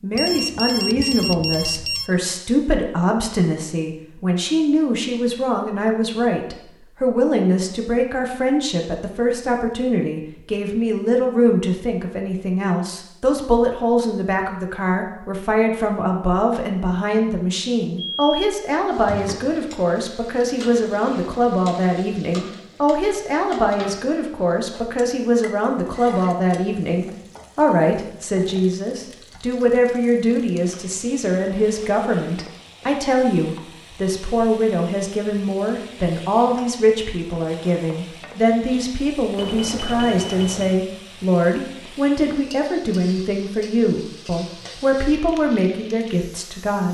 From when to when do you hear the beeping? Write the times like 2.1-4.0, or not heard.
0.1-2.1, 17.9-18.4, 39.4-40.8.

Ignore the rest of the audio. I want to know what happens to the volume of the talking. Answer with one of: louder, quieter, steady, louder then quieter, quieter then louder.
steady.